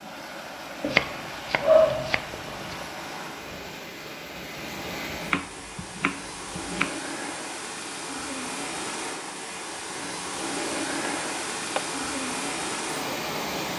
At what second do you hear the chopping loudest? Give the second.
2 s.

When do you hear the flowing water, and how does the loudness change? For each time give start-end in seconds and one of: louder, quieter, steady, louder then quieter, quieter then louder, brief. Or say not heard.
0.0-13.7 louder.